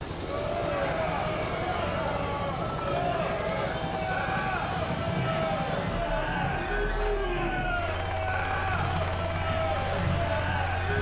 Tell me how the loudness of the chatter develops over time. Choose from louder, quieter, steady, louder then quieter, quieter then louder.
steady.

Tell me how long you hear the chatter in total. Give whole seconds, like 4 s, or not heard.
11 s.